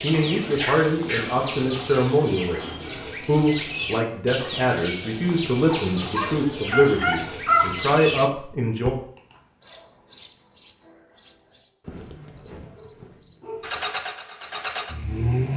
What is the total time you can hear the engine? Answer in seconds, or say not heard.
2 s.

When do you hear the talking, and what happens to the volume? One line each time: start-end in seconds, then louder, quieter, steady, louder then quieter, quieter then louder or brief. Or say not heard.
0.0-8.9 steady.